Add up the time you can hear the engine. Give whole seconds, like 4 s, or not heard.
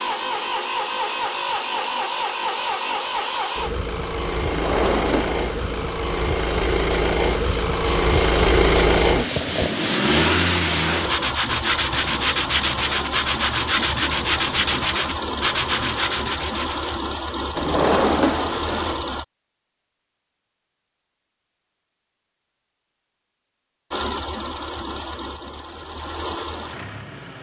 23 s.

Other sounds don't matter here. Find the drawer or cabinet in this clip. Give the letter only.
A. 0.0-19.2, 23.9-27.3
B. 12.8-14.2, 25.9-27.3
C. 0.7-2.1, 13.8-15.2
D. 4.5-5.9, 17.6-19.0
D.